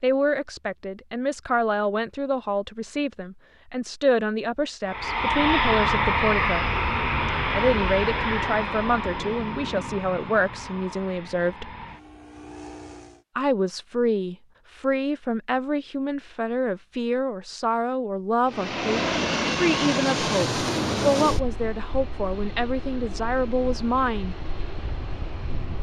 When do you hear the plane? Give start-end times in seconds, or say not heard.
4.8-13.2, 18.4-25.7.